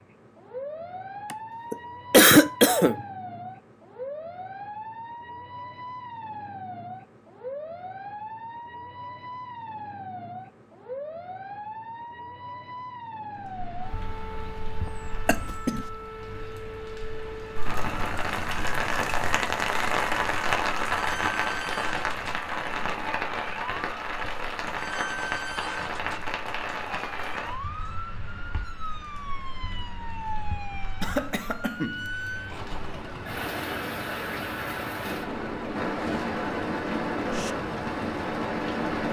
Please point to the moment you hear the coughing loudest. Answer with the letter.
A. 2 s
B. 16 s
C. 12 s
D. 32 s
A.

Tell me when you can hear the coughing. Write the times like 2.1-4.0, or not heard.
1.3-3.0, 15.2-15.8, 31.0-32.0.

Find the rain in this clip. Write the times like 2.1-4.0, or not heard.
13.4-39.0.